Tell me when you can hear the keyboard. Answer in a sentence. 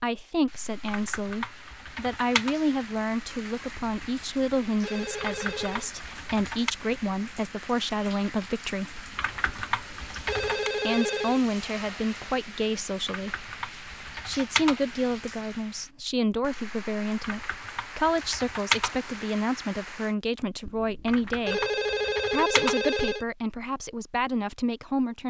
You can hear the keyboard from 0.8 to 2.5 s, from 5.2 to 6.8 s, from 9.2 to 10.7 s, from 13.1 to 15.0 s, from 17.2 to 19.2 s and from 21.1 to 23.0 s.